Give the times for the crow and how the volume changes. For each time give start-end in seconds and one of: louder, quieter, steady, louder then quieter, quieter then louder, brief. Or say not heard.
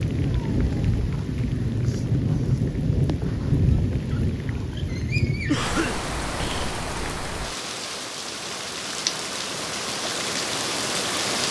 not heard.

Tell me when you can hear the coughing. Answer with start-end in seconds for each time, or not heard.
5.5-6.8.